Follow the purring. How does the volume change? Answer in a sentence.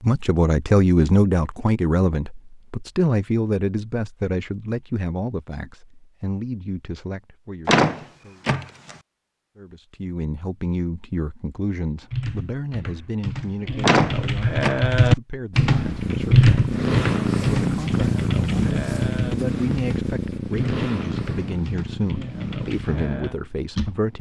The loudness of the purring goes down.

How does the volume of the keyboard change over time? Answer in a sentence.
The volume of the keyboard goes up, then down.